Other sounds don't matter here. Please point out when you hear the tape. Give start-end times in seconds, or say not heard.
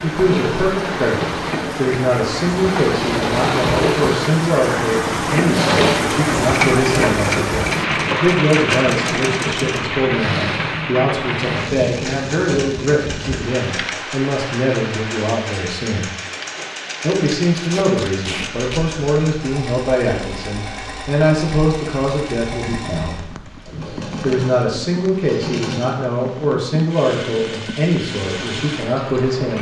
17.6-18.8.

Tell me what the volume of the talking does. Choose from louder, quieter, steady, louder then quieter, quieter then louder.
steady.